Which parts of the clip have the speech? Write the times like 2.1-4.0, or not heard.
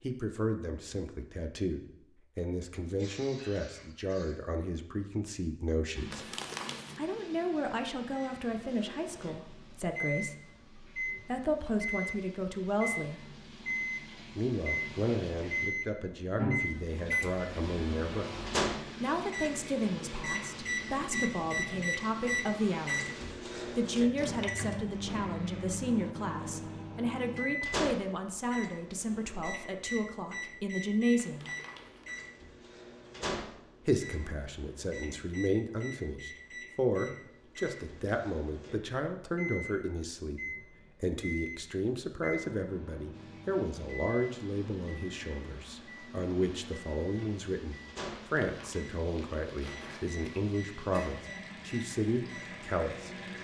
0.0-6.3, 7.0-13.2, 14.3-18.3, 19.0-23.1, 23.6-31.5, 33.9-53.1.